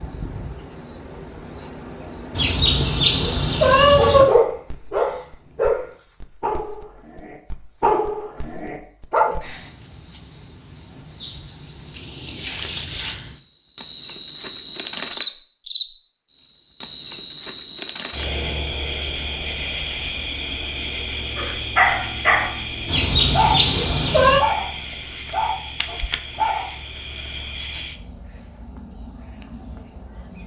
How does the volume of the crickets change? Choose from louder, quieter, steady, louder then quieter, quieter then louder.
louder then quieter.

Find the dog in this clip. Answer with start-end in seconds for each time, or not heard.
4.0-9.3, 21.4-22.6, 23.3-26.7.